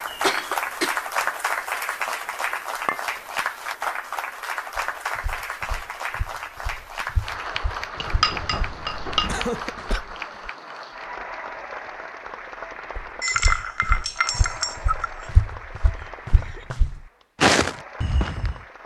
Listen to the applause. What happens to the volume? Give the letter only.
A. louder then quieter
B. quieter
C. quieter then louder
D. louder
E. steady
B.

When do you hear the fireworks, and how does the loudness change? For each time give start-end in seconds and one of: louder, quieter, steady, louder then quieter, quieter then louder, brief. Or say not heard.
not heard.